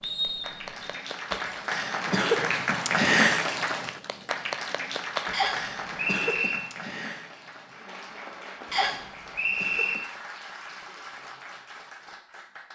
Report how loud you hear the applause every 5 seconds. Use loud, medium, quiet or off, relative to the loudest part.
loud, medium, quiet.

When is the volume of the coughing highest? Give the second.
2 s.